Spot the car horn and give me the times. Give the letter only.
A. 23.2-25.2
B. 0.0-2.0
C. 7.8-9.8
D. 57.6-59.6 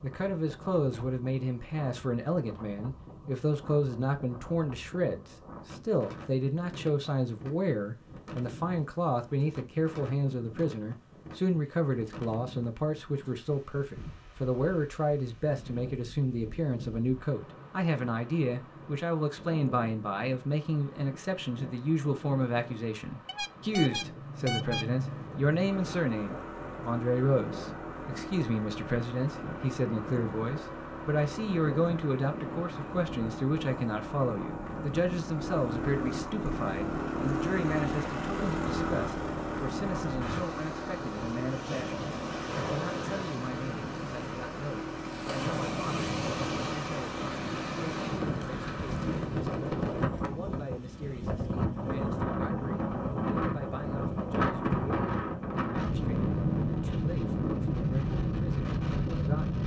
A.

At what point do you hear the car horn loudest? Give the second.
25 s.